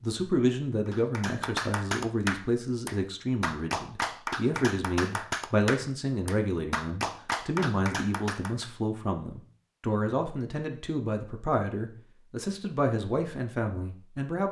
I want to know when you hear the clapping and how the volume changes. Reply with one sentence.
You can hear the clapping from 0.8 to 8.7 s, at a steady volume.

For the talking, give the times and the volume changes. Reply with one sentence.
The talking can be heard from 0.0 to 14.4 s, at a steady volume.